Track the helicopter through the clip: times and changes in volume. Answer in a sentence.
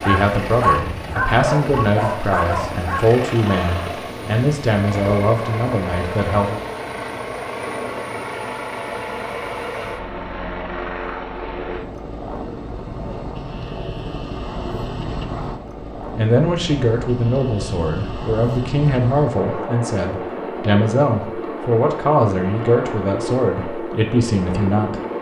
The helicopter can be heard from 0.0 to 25.1 s, at a steady volume.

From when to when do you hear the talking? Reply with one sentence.
You can hear the talking from 0.0 to 6.6 s and from 16.1 to 25.0 s.